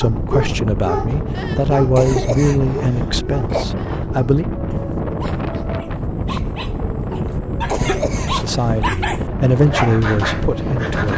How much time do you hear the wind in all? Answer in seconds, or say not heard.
11 s.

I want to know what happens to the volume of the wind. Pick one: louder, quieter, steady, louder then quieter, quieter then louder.
steady.